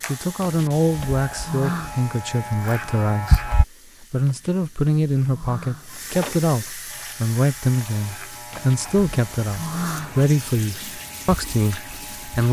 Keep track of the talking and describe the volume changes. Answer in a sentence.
The loudness of the talking stays about the same.